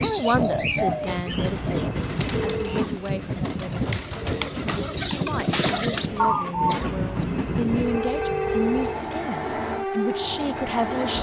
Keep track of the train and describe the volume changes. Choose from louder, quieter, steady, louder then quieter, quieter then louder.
steady.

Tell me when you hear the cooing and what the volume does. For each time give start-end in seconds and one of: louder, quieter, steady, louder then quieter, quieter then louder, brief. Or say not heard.
0.0-6.8 quieter then louder.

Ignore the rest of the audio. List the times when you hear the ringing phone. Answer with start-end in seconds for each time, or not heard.
1.3-2.9, 6.8-9.1.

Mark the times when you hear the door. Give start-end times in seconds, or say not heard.
not heard.